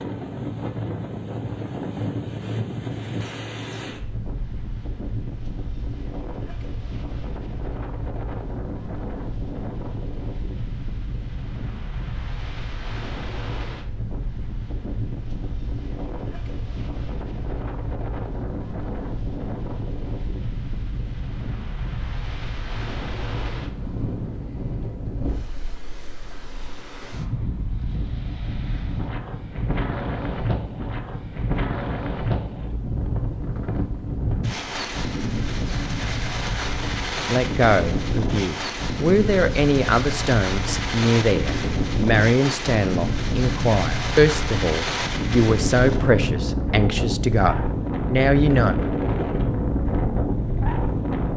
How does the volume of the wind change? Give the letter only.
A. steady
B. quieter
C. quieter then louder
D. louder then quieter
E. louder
E.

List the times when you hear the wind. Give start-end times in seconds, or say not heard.
0.0-51.3.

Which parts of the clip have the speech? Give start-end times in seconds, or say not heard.
37.2-48.8.